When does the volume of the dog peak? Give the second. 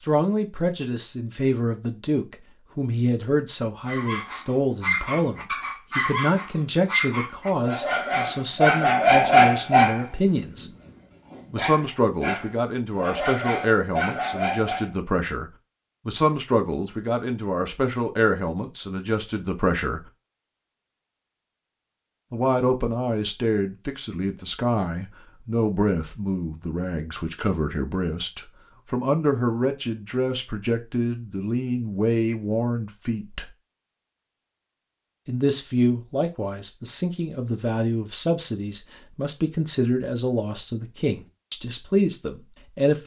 9 s.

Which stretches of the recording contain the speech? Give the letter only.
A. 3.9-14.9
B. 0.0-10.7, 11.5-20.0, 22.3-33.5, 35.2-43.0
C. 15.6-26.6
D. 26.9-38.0
B.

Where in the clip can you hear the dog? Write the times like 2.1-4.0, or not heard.
3.9-14.9.